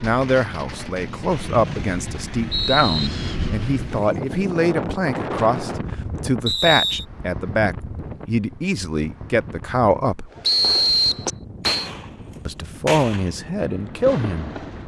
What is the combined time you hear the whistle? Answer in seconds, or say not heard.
4 s.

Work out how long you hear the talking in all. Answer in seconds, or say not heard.
12 s.